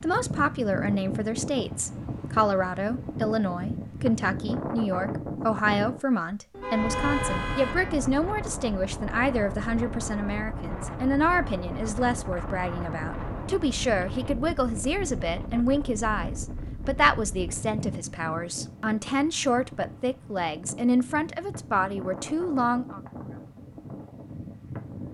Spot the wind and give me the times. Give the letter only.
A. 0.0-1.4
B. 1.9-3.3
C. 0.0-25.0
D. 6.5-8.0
C.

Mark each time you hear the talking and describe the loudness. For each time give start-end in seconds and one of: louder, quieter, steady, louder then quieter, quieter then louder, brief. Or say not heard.
0.0-23.0 steady.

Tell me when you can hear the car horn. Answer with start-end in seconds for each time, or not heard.
6.5-8.0.